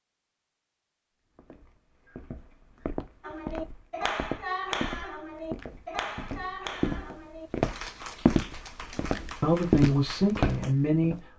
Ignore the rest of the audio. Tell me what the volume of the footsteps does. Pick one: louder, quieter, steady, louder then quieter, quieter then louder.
louder.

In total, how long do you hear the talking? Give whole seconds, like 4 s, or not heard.
2 s.